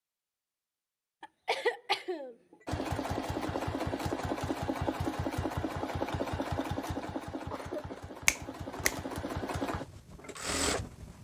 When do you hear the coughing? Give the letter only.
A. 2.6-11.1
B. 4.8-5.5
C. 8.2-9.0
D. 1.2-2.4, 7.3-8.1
D.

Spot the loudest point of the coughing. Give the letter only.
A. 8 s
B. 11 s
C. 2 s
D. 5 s
C.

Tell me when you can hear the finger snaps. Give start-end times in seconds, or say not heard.
8.2-9.0.